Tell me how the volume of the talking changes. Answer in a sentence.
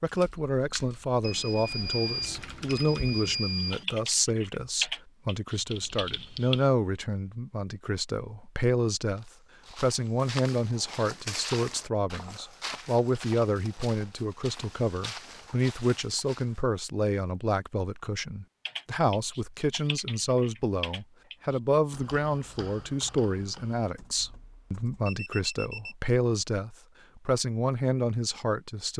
The loudness of the talking stays about the same.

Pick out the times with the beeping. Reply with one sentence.
The beeping can be heard from 1.2 to 3.9 s and from 25.1 to 25.9 s.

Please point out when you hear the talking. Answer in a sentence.
You can hear the talking from 0.0 to 28.9 s.